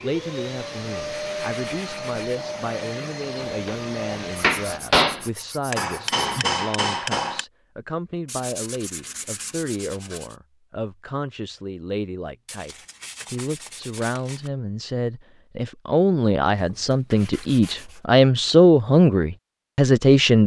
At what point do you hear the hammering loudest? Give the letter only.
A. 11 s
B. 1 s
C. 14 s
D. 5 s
D.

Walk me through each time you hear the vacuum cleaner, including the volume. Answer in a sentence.
You can hear the vacuum cleaner from 0.0 to 4.8 s, at a steady volume.